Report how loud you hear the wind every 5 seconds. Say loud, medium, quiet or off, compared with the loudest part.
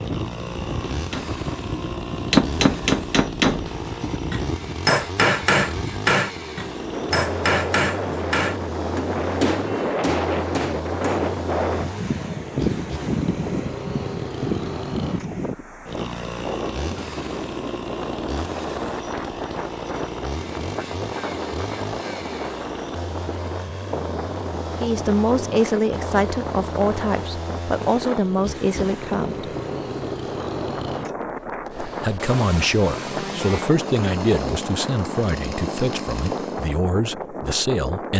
medium, loud, loud, medium, medium, medium, medium, medium.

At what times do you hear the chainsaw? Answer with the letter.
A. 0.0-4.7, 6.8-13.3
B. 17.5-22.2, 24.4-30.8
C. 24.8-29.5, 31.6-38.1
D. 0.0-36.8
D.